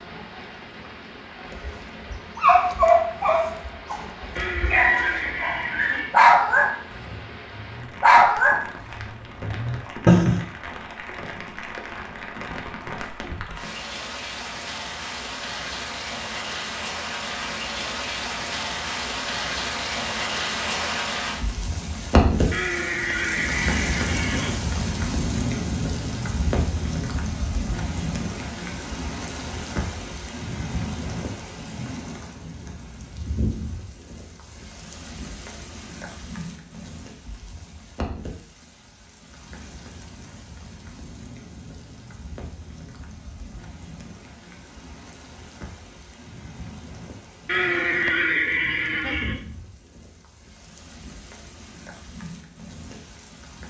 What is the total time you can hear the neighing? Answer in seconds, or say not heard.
6 s.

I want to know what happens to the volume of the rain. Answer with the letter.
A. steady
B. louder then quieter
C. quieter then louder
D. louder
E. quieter
B.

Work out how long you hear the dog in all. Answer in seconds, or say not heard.
9 s.